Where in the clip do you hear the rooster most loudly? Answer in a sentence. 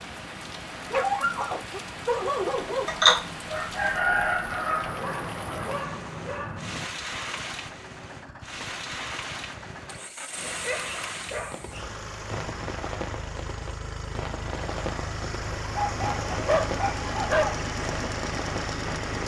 The volume of the rooster peaks at 3 seconds.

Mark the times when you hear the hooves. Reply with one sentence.
The hooves can't be heard in this clip.